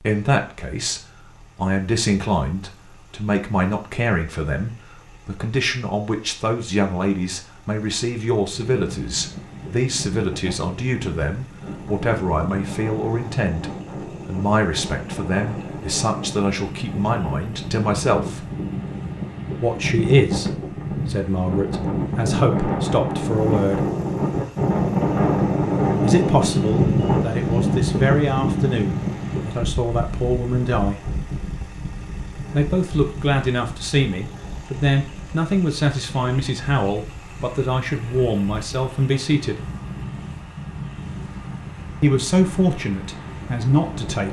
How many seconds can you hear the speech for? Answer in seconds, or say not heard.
37 s.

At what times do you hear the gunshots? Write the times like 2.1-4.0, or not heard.
not heard.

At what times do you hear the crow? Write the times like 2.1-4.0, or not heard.
not heard.